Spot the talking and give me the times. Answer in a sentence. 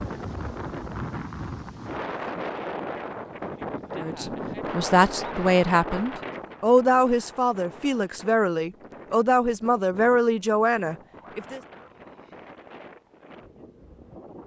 You can hear the talking from 4.0 to 11.6 s.